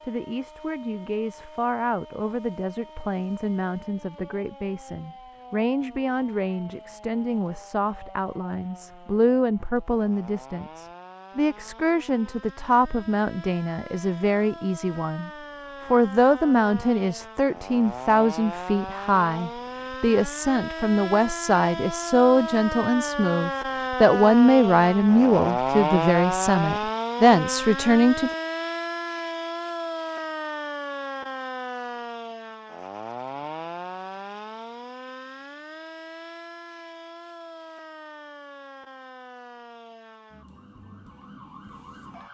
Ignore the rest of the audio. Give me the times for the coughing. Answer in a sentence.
You can't hear the coughing here.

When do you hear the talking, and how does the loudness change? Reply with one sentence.
The talking can be heard from 0.0 to 28.3 s, getting louder.